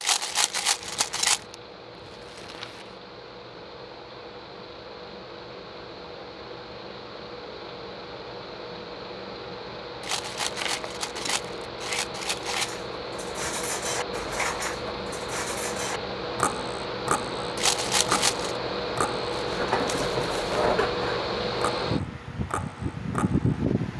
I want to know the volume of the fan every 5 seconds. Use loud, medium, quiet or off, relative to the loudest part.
quiet, medium, medium, loud, loud.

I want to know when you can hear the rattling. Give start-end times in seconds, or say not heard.
0.0-1.4, 10.0-12.7, 17.6-18.6.